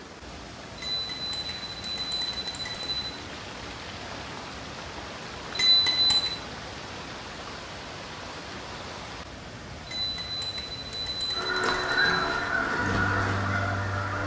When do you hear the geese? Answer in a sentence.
The geese can be heard from 11.3 to 14.2 s.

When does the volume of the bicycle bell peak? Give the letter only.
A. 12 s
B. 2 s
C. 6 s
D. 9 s
C.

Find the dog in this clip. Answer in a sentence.
The dog can't be heard in this clip.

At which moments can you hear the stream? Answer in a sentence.
You can hear the stream from 0.0 to 14.2 s.